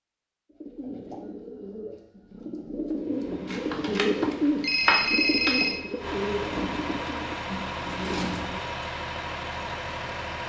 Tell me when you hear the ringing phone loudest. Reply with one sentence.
The loudest moment of the ringing phone is at 5 seconds.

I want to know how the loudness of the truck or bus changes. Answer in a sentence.
The volume of the truck or bus goes up.